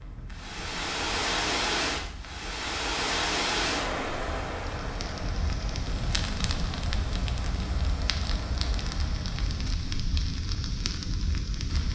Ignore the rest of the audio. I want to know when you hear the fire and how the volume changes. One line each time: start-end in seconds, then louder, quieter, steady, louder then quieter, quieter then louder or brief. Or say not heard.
0.0-11.9 louder.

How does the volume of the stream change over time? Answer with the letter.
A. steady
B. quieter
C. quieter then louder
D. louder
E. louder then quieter
B.